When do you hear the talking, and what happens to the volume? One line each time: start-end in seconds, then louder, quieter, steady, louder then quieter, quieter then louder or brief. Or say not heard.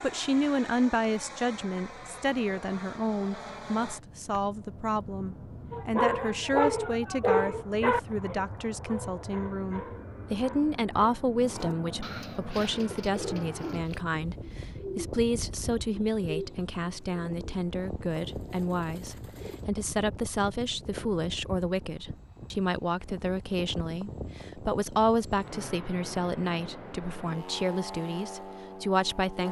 0.0-29.4 steady.